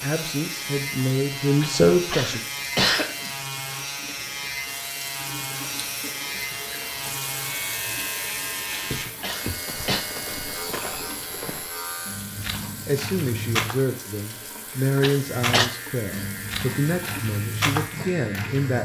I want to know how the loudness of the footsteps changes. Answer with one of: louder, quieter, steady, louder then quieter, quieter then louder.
louder.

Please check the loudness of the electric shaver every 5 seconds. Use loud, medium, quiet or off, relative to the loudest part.
loud, loud, medium, medium.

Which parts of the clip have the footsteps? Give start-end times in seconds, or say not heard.
8.8-13.8, 15.2-18.8.